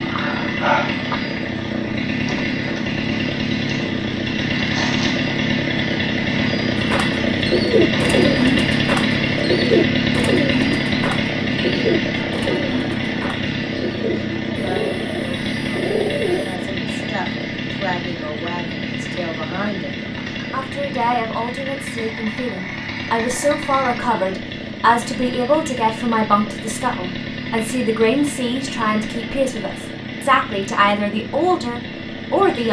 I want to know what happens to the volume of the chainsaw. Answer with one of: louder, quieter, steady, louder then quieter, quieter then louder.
quieter.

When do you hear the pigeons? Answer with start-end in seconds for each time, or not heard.
6.8-16.6.